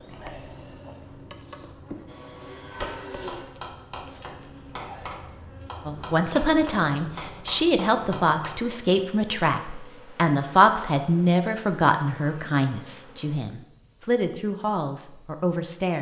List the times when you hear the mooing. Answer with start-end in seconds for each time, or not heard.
2.4-3.5.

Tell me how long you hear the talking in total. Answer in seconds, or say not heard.
10 s.